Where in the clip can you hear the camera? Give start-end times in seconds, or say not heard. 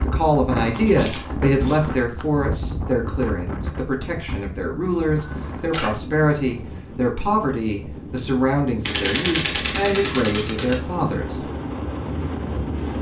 0.7-1.9, 5.2-6.0, 8.8-10.8.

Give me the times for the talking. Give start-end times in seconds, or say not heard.
0.0-11.4.